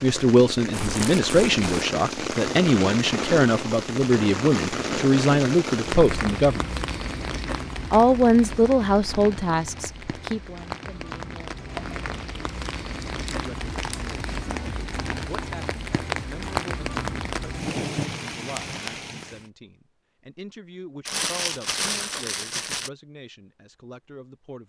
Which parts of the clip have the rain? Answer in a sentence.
You can hear the rain from 0.0 to 19.4 s.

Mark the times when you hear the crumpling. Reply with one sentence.
You can hear the crumpling from 0.7 to 1.9 s, from 11.7 to 14.2 s and from 21.1 to 22.9 s.